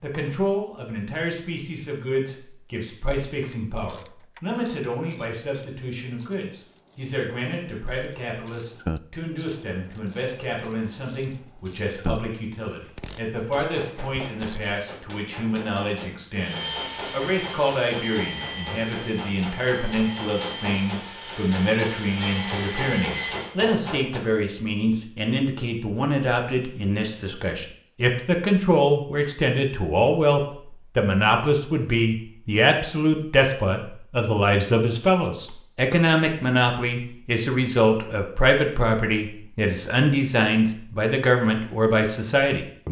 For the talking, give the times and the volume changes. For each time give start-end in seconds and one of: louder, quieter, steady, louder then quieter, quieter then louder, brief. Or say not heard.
0.0-42.8 louder.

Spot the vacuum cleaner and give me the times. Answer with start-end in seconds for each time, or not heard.
16.4-23.6.